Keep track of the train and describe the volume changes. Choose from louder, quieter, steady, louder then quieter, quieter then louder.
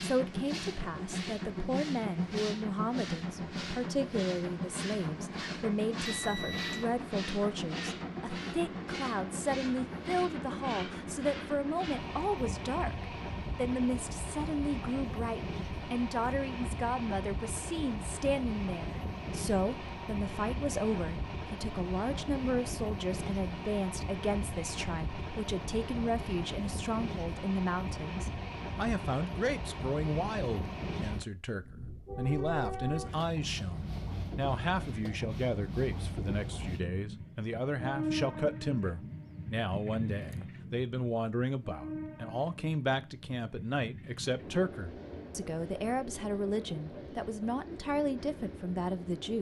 quieter.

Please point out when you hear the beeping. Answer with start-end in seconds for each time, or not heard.
6.0-6.9.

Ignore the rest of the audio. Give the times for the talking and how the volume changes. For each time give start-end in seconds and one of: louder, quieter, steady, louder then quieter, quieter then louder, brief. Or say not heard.
0.0-49.3 steady.